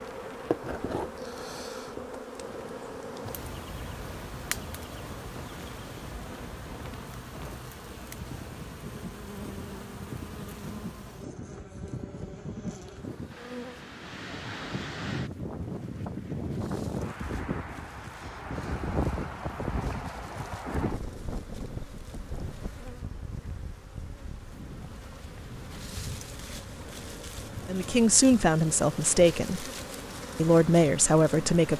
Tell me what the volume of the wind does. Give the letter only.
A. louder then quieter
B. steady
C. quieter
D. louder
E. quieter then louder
A.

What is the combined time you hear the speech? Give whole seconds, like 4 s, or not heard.
3 s.